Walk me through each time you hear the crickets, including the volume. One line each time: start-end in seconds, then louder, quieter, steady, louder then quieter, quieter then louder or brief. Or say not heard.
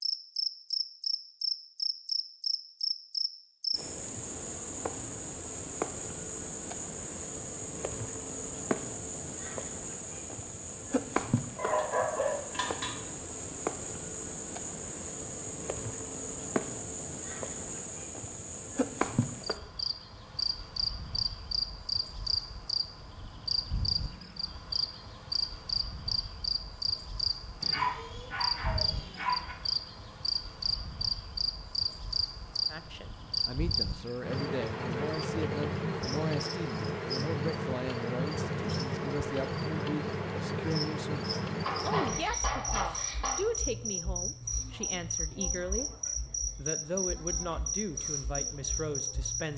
0.0-49.5 steady.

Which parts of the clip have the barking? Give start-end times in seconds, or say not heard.
11.6-13.0, 27.6-29.6, 41.6-43.4.